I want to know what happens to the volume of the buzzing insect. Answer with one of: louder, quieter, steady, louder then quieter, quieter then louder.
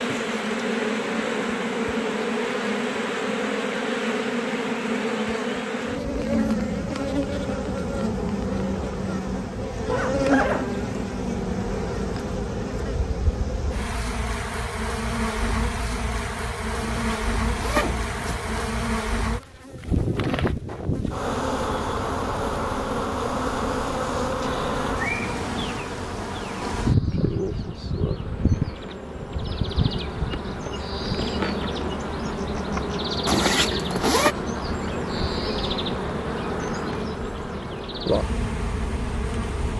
steady.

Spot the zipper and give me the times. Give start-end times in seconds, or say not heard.
9.8-10.8, 16.8-18.6, 33.2-34.4.